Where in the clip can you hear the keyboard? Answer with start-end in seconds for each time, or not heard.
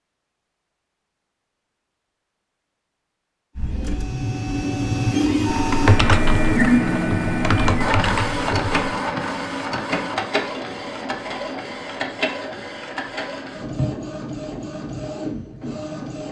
3.5-8.9.